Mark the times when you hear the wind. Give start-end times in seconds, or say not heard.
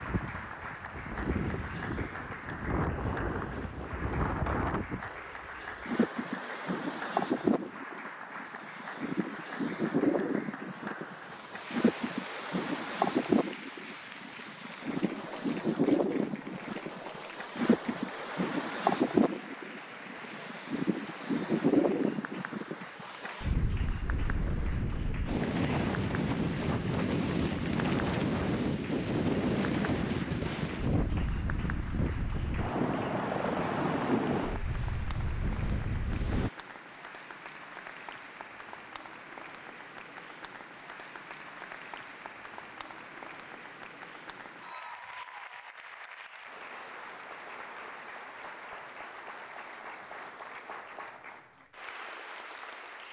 0.0-36.5.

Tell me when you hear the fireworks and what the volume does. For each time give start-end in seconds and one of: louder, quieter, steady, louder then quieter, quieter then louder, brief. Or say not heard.
not heard.